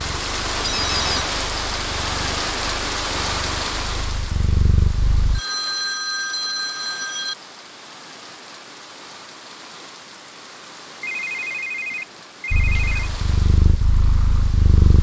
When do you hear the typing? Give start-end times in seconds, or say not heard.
not heard.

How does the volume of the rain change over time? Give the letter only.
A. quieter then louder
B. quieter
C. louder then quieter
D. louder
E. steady
B.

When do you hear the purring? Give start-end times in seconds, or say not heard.
0.0-5.4, 12.5-14.9.